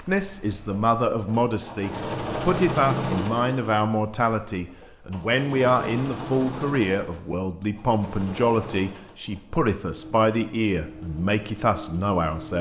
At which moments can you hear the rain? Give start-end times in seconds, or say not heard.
not heard.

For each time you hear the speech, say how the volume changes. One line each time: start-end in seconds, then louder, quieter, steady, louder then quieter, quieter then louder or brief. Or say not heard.
0.0-12.5 steady.